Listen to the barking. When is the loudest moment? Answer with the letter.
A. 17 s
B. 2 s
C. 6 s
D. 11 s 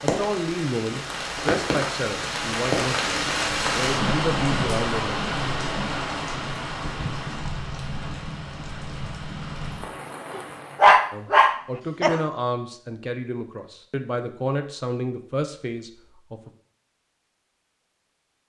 D.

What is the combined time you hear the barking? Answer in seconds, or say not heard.
2 s.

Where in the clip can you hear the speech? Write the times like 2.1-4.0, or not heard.
0.0-5.2, 11.1-16.5.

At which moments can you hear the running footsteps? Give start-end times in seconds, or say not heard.
not heard.